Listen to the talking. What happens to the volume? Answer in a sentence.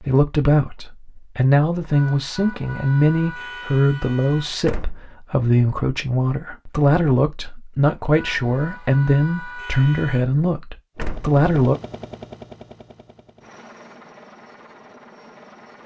The loudness of the talking stays about the same.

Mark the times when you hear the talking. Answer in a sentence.
You can hear the talking from 0.0 to 11.8 s.